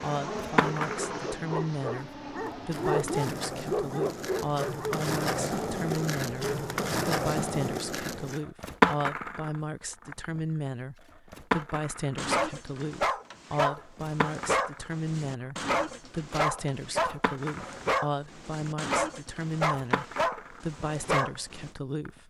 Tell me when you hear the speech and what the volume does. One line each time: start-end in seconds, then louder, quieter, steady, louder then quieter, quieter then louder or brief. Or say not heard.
0.0-22.2 steady.